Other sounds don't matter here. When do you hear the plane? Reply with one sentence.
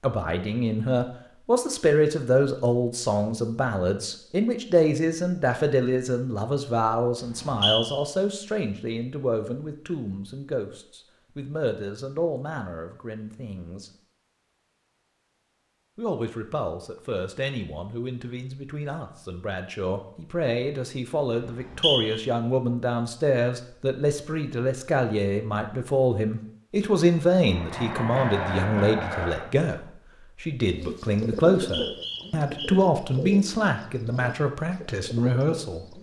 The plane can be heard from 27.4 to 29.5 s.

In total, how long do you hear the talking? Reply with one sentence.
You can hear the talking for 34 seconds altogether.